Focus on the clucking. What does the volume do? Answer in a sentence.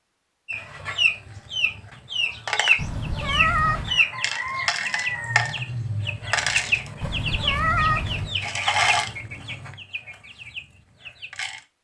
The loudness of the clucking goes down.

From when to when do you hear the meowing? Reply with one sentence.
The meowing can be heard from 2.8 to 4.0 s and from 7.0 to 8.3 s.